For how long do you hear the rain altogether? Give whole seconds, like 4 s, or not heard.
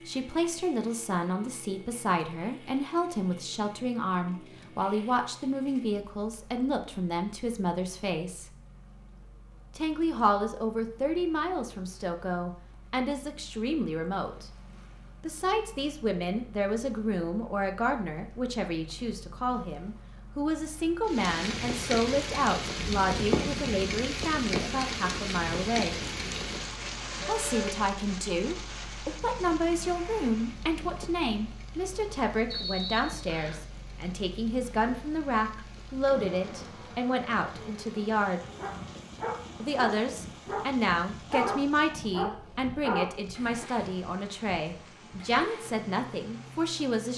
26 s.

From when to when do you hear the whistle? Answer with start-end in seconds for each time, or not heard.
32.5-33.6.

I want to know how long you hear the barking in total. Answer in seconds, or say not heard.
5 s.